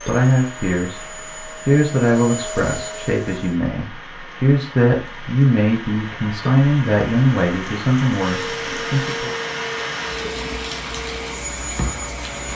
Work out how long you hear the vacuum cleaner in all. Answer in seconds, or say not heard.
8 s.